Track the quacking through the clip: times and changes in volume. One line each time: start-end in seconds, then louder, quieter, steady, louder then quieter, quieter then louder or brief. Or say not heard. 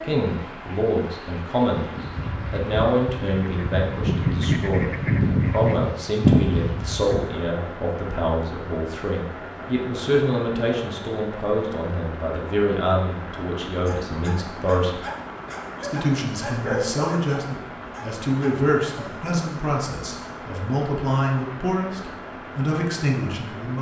1.9-7.5 louder.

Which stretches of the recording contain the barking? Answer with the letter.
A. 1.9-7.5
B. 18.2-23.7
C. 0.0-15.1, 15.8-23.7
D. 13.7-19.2
D.